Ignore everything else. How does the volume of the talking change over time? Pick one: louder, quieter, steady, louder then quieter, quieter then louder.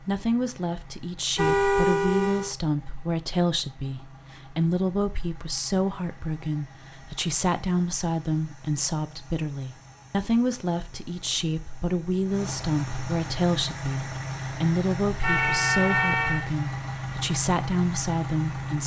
steady.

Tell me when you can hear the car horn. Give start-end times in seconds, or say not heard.
1.4-2.5, 15.2-16.4.